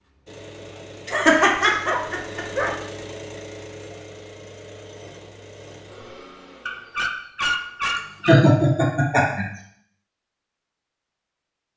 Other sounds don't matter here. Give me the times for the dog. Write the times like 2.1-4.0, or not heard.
1.1-2.8, 6.7-8.6.